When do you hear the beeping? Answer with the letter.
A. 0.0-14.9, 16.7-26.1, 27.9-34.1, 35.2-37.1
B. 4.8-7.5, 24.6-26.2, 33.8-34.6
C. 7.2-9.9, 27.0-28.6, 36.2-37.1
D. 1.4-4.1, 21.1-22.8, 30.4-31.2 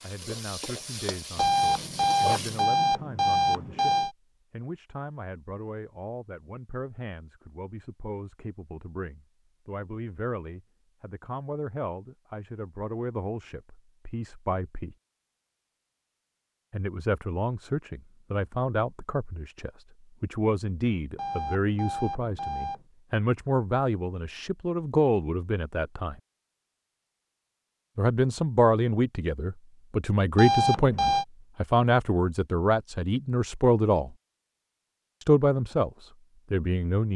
D.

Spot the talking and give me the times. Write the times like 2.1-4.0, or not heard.
0.0-14.9, 16.7-26.1, 27.9-34.1, 35.2-37.1.